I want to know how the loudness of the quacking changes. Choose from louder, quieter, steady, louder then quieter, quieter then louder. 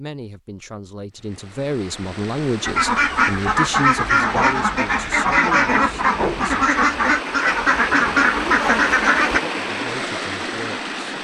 steady.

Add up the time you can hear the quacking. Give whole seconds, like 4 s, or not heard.
7 s.